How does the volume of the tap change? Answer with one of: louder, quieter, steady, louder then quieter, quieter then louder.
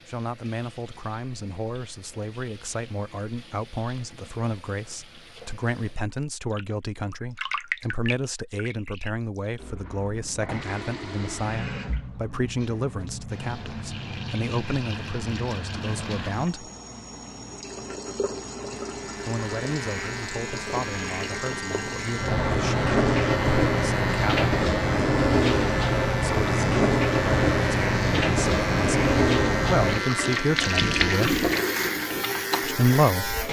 louder.